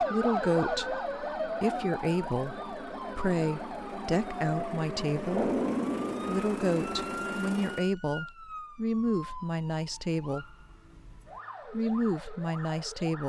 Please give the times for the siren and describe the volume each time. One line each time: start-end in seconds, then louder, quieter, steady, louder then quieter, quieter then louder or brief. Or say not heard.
0.0-13.2 quieter.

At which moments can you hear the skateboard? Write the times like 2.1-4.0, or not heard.
not heard.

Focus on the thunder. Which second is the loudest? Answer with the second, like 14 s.
6 s.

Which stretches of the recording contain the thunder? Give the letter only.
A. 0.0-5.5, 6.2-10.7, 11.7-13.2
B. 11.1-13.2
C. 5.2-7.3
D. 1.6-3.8
C.